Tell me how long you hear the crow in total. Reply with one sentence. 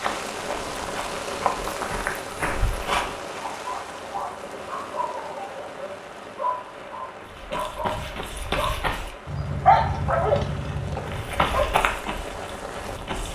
The crow can't be heard in this clip.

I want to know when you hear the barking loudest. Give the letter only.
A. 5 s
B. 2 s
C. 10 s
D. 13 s
C.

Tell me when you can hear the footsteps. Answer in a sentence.
The footsteps can be heard from 0.0 to 3.1 s, from 7.2 to 9.1 s and from 11.1 to 13.3 s.